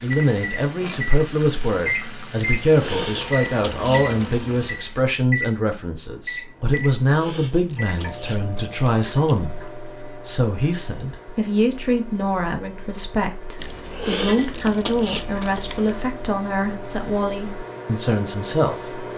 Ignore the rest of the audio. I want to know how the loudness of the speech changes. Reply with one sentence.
The loudness of the speech stays about the same.